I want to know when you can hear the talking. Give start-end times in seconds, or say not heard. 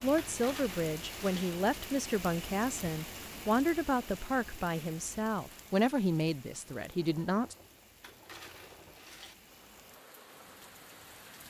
0.0-7.5.